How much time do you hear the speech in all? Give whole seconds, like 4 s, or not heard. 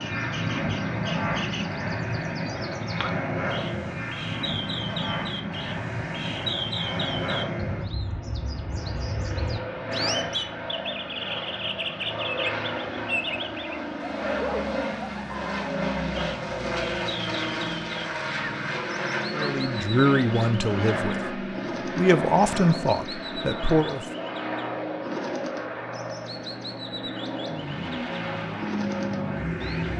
5 s.